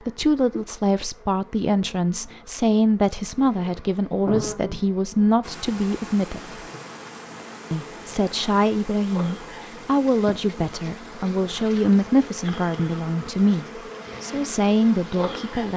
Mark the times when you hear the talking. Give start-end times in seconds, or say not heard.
0.1-6.6, 7.7-15.7.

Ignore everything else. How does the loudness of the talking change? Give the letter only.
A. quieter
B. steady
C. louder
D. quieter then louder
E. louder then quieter
B.